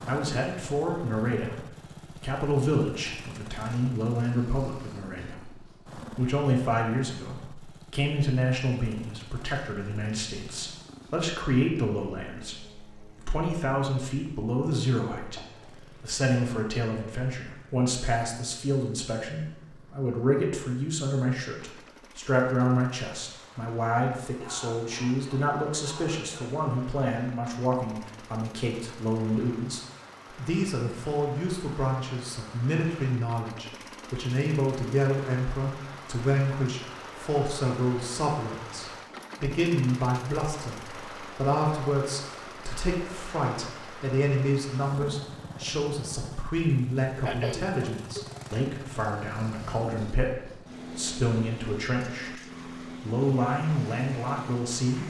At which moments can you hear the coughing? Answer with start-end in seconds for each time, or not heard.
15.2-15.7, 24.4-26.6, 47.2-48.2.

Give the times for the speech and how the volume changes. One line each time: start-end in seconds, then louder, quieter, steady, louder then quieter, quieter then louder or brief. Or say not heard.
0.1-52.4 steady
53.0-55.0 brief.